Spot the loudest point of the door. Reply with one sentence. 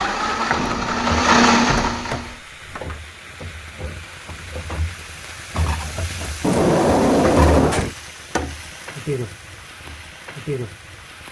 The loudest moment of the door is at 7 seconds.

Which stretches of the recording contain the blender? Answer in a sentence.
You can hear the blender from 0.0 to 2.4 s.